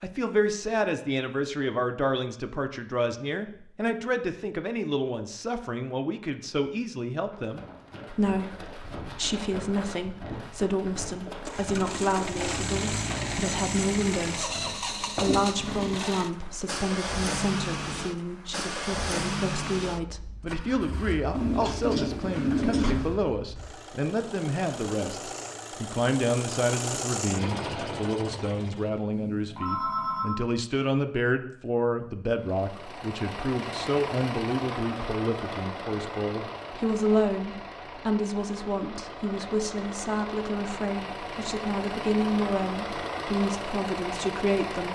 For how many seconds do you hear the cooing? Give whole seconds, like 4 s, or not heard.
2 s.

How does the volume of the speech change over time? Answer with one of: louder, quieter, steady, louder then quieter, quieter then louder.
steady.